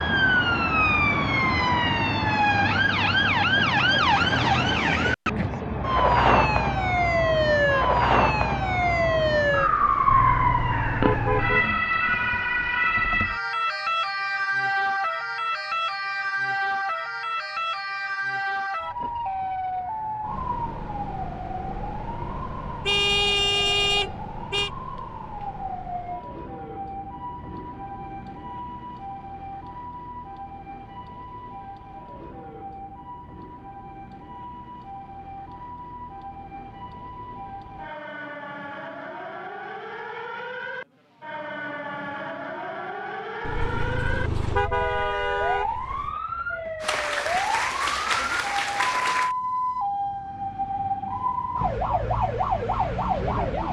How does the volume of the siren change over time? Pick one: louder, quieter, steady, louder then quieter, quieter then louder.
quieter then louder.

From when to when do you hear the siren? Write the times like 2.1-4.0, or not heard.
0.0-53.6.